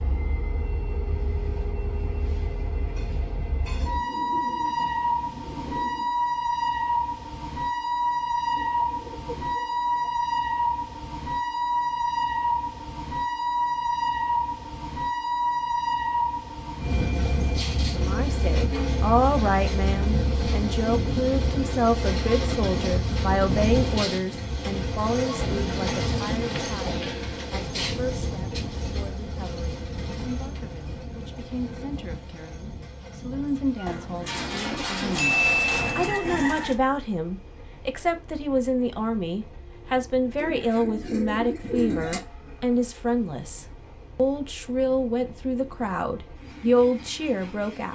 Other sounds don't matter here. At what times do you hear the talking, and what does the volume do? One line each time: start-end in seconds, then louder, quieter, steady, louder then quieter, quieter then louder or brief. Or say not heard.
17.9-47.9 quieter then louder.